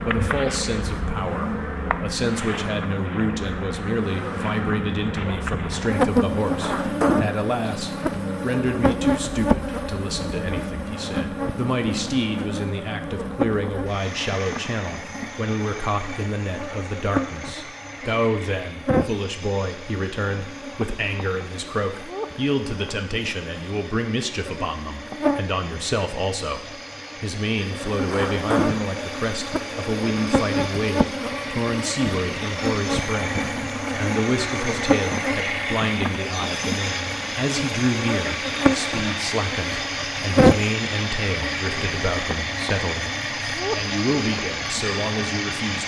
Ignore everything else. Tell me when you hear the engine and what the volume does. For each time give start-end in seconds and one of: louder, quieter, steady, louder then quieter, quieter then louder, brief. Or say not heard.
0.0-45.8 quieter then louder.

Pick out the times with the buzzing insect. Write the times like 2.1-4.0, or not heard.
0.0-45.8.